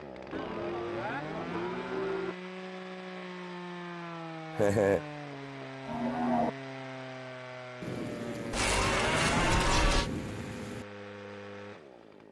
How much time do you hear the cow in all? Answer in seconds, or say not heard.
5 s.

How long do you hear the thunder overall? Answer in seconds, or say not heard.
3 s.